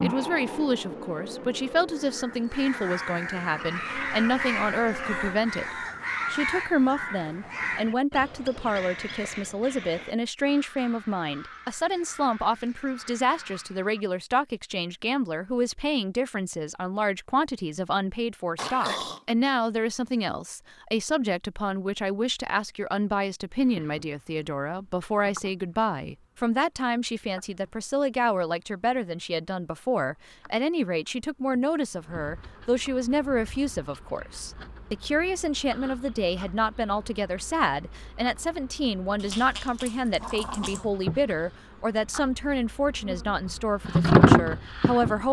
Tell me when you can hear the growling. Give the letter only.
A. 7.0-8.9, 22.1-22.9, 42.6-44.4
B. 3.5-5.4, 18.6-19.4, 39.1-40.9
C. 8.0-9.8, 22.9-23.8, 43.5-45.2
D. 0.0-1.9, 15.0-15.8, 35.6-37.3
B.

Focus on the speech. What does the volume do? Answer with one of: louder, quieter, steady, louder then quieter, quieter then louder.
steady.